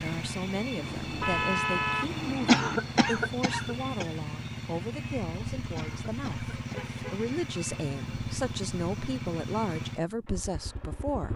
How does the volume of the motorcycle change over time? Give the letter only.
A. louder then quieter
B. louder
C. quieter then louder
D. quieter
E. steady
E.